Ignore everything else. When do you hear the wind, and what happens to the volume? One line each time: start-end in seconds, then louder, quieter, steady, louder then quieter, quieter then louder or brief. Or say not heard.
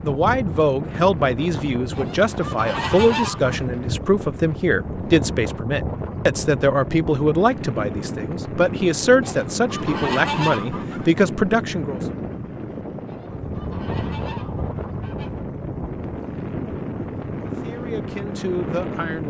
0.0-19.2 steady.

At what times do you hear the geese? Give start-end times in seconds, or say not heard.
1.9-3.6, 9.2-11.2, 13.1-15.4.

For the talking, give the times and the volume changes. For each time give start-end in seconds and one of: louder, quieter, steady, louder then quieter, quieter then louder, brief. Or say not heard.
0.0-12.0 steady
17.4-19.2 brief.